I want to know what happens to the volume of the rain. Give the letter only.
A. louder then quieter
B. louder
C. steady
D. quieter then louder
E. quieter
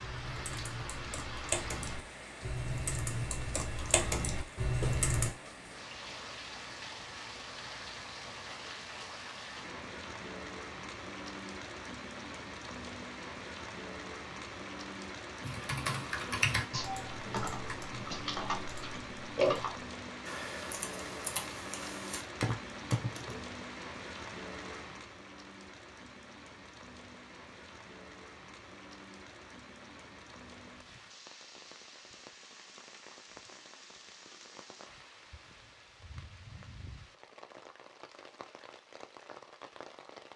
E.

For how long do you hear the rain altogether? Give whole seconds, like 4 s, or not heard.
40 s.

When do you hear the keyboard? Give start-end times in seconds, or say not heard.
0.0-5.3, 15.4-23.4.